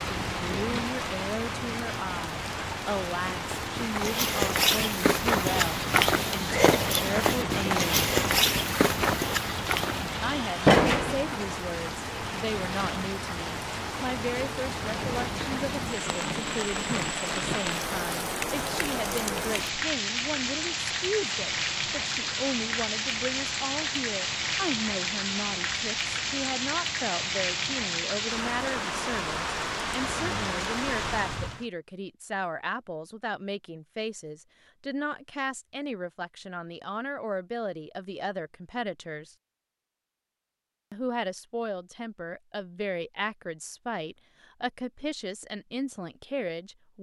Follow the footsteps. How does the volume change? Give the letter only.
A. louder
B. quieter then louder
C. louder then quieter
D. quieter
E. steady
E.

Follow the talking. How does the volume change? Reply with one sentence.
The loudness of the talking stays about the same.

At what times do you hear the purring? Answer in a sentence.
You can't hear the purring here.